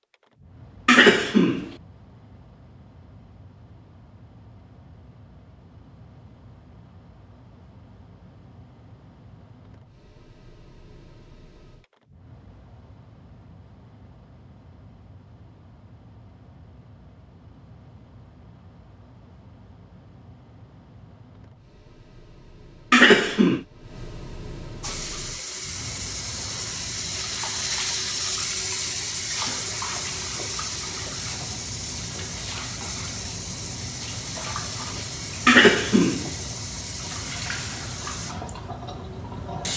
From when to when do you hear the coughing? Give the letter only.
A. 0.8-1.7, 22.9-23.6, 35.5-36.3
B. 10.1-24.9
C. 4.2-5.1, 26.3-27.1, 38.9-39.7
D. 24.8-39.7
A.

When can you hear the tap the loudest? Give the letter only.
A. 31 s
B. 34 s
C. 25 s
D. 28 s
D.